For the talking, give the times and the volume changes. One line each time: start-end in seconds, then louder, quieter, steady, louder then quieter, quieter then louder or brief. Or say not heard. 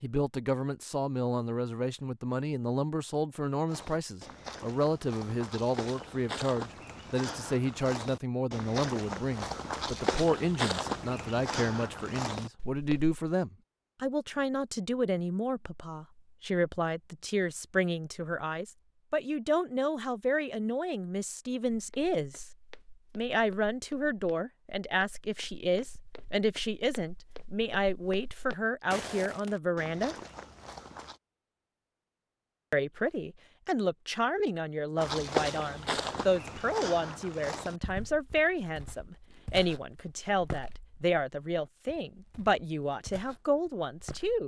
0.0-22.4 steady
23.1-30.1 steady
32.7-44.4 steady.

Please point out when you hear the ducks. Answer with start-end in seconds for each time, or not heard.
not heard.